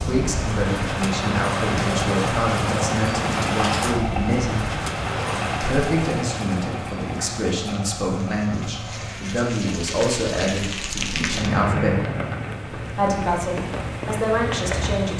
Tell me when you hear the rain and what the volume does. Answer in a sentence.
The rain can be heard from 0.0 to 15.1 s, getting quieter then louder.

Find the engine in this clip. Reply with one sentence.
The engine can be heard from 0.0 to 9.2 s.